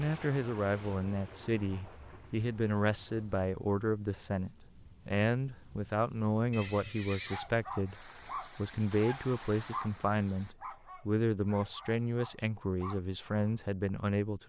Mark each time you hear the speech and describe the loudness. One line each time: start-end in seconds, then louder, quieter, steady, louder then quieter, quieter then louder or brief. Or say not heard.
0.0-14.4 steady.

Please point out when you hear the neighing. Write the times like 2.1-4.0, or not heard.
6.5-7.5.